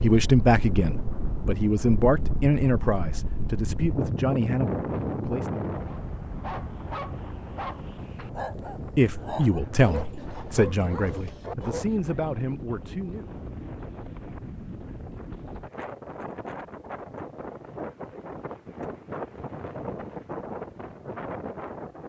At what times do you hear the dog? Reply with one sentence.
The dog can be heard from 5.8 to 11.8 s.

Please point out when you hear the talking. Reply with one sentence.
The talking can be heard from 0.0 to 5.7 s and from 8.8 to 13.3 s.